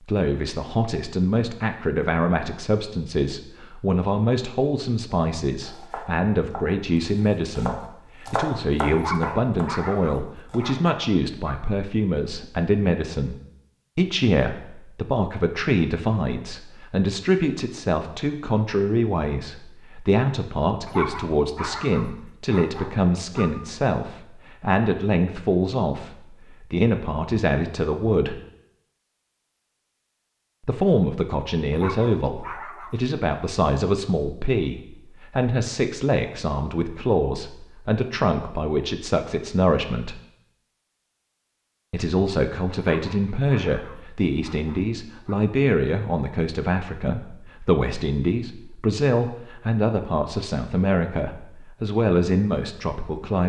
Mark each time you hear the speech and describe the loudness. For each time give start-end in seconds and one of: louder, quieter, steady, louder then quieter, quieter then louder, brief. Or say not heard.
0.1-13.3 steady
13.9-28.4 steady
30.6-40.2 steady
41.9-53.4 steady.